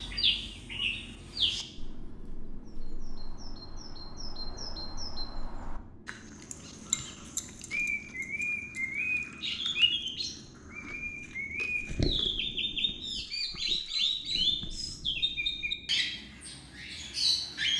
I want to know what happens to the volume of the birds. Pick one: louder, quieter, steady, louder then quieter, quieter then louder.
louder.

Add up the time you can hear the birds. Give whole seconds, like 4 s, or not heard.
18 s.